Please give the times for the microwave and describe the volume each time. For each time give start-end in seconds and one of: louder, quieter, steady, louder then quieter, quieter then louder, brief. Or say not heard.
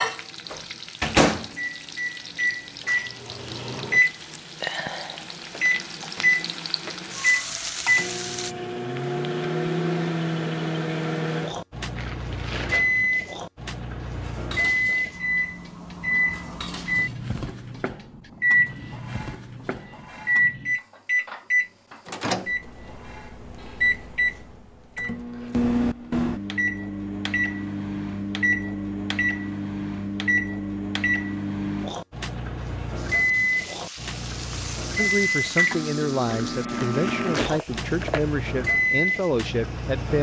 0.0-40.1 steady.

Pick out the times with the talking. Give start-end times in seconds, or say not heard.
35.0-40.1.